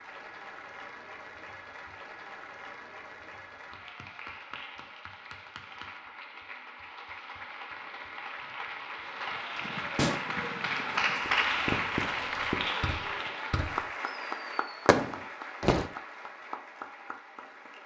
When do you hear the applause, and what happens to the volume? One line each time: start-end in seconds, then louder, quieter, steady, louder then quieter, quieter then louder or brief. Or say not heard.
0.0-17.8 louder then quieter.